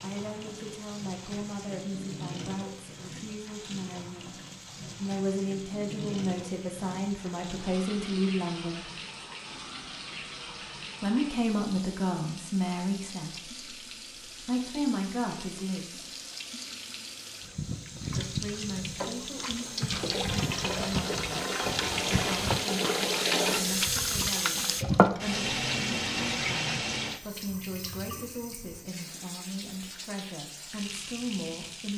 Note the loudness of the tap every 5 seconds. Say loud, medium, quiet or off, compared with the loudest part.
quiet, quiet, quiet, medium, loud, loud, quiet.